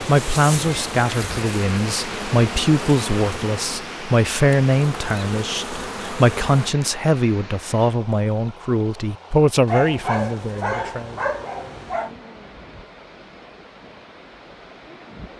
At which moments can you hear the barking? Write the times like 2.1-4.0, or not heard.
9.7-12.2.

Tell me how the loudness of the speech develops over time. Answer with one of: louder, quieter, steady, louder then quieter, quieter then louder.
steady.